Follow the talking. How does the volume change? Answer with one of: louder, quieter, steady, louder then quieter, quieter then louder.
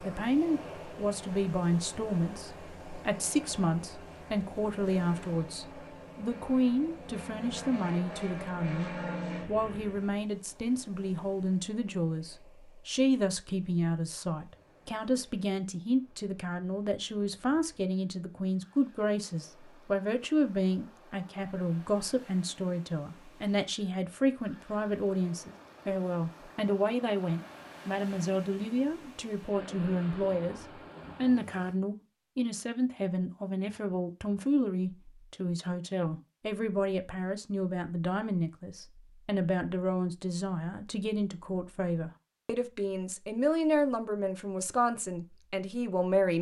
steady.